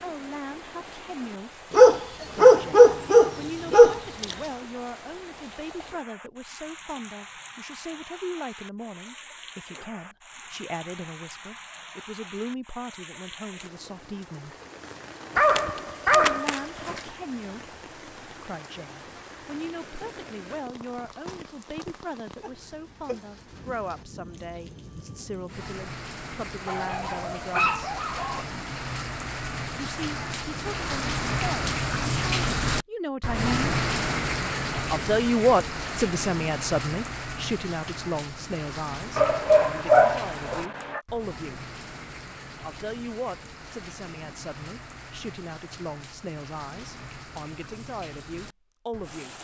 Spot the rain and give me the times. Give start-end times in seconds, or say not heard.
0.0-49.3.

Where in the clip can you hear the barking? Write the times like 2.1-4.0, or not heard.
1.7-4.3, 15.3-17.0, 26.6-28.4, 39.1-41.0.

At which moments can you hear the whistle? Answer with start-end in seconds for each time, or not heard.
not heard.